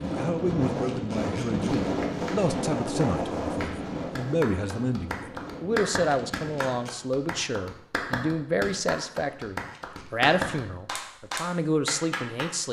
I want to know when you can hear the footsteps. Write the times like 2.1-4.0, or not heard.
not heard.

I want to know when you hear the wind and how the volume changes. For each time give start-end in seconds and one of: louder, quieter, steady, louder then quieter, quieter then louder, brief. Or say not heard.
0.0-6.8 quieter.